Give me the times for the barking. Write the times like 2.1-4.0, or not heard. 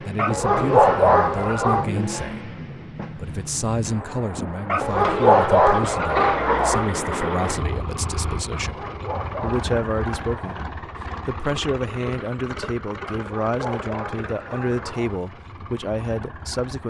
0.1-1.9, 4.7-6.9, 8.5-10.7, 13.1-15.2.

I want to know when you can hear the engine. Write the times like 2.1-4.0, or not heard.
0.0-16.8.